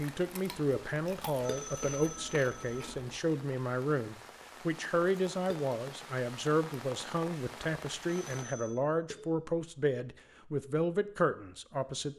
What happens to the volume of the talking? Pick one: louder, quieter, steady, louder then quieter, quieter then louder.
steady.